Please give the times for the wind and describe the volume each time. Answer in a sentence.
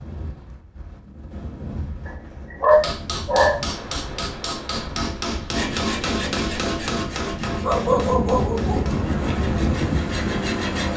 You can hear the wind from 0.0 to 10.9 s, getting louder.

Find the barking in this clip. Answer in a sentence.
The barking can be heard from 2.0 to 3.6 s and from 7.4 to 8.8 s.